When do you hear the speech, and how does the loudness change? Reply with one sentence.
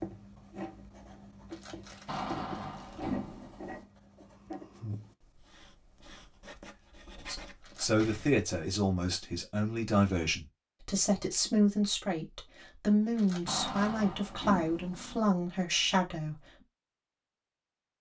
You can hear the speech from 7.2 to 16.4 s, at a steady volume.